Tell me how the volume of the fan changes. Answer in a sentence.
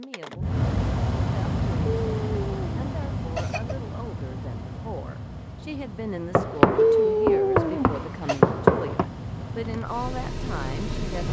The loudness of the fan goes down, then up.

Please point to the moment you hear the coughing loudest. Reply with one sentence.
The loudest moment of the coughing is at 7 seconds.